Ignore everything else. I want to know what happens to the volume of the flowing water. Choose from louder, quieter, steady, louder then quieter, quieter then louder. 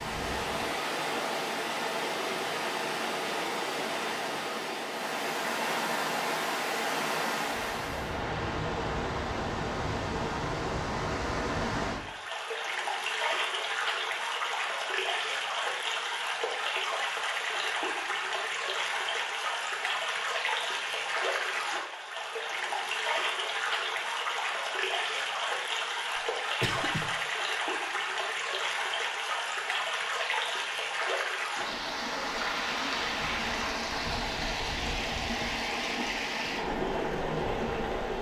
steady.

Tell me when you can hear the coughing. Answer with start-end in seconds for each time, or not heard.
26.1-27.1.